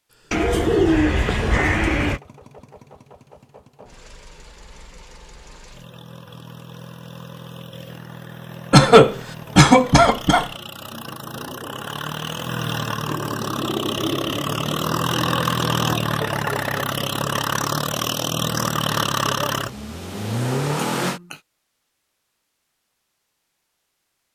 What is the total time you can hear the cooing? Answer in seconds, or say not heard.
5 s.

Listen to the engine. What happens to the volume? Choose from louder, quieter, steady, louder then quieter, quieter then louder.
louder.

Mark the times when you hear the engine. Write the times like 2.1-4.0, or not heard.
2.0-21.2.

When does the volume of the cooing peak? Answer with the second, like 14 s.
1 s.